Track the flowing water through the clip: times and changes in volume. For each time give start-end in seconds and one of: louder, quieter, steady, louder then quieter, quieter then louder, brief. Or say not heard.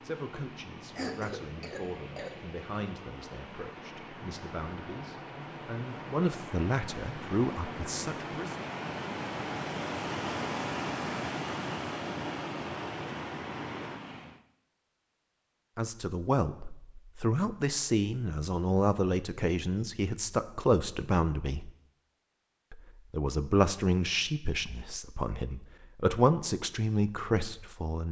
0.0-14.4 louder.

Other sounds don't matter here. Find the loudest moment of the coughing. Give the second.
1 s.